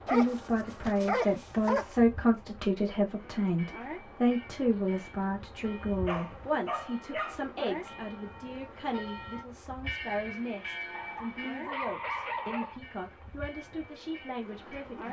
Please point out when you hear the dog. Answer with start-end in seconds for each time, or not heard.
0.1-1.9, 6.0-8.0, 10.9-12.8.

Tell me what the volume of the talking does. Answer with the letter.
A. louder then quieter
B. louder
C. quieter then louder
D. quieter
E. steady
D.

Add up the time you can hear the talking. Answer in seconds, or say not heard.
15 s.